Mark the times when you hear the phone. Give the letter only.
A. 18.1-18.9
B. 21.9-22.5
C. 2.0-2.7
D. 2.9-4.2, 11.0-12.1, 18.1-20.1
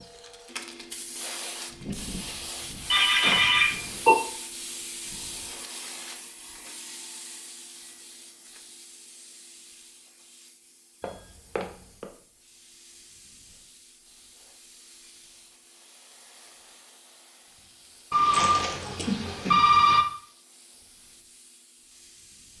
D.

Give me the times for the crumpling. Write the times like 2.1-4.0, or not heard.
18.1-18.9.